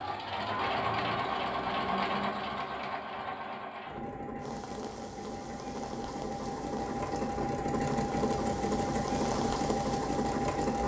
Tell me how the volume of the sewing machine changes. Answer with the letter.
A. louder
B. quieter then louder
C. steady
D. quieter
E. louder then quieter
B.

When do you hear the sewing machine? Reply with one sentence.
You can hear the sewing machine from 0.0 to 10.8 s.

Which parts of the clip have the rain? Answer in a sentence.
You can hear the rain from 4.3 to 10.8 s.